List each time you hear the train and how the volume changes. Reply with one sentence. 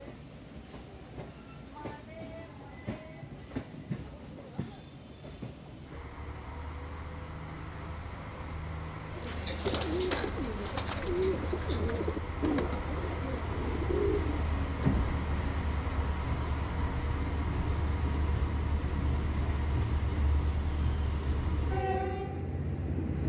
You can hear the train from 0.0 to 23.2 s, getting louder.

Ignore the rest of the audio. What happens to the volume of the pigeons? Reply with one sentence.
The volume of the pigeons goes down, then up.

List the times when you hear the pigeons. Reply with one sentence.
You can hear the pigeons from 9.2 to 15.2 s.